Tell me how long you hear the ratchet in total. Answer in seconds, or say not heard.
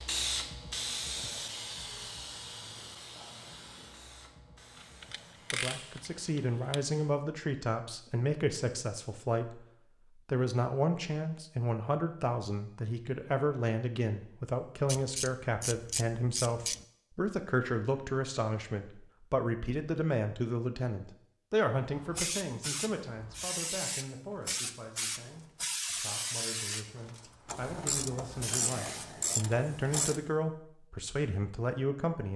7 s.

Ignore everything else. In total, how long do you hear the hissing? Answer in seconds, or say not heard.
15 s.